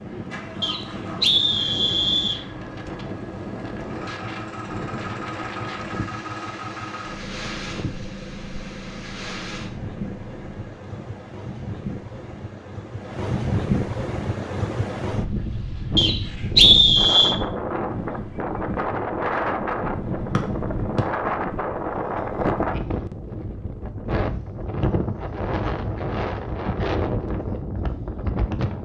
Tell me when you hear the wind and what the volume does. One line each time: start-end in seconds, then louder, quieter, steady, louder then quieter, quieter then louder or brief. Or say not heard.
0.0-28.7 louder.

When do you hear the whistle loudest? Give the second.
17 s.